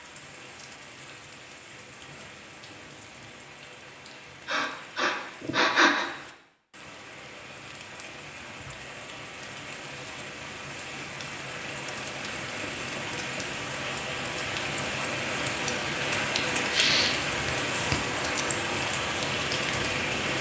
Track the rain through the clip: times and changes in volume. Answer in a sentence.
The rain can be heard from 0.0 to 20.3 s, getting louder.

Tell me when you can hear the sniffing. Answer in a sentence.
The sniffing can be heard from 4.5 to 6.1 s and from 16.6 to 17.2 s.